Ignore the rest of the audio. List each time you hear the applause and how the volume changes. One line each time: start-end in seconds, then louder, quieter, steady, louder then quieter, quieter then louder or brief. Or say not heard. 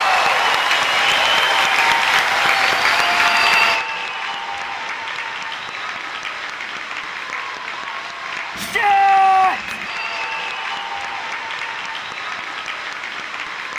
0.0-13.7 quieter.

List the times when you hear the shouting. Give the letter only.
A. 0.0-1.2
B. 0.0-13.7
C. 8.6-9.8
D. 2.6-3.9
C.